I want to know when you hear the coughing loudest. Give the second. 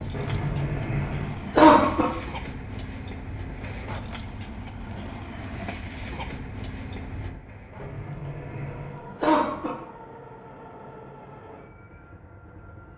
2 s.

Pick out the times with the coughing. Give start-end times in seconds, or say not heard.
0.1-2.0, 7.8-9.8.